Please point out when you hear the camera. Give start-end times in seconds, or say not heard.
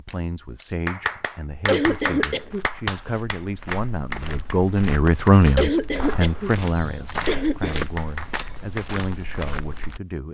0.1-0.8, 6.5-7.8.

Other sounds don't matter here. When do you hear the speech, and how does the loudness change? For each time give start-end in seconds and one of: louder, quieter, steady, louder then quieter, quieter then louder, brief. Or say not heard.
0.0-10.2 louder then quieter.